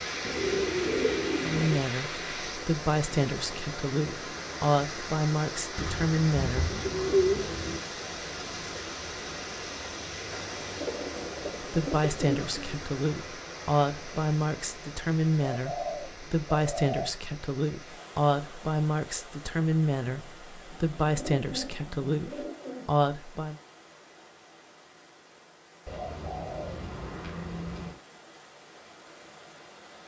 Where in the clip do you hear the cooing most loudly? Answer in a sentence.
The loudest moment of the cooing is at 7 seconds.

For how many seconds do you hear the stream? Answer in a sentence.
The stream can be heard for 30 seconds in total.